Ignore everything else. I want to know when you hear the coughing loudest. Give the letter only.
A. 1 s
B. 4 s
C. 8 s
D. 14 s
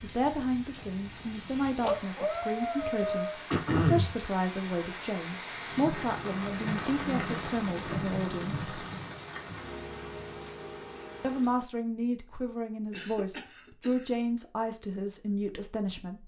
B.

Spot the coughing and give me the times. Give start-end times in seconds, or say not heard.
3.5-4.2, 12.9-14.1.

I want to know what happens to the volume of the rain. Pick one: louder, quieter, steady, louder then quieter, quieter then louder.
louder then quieter.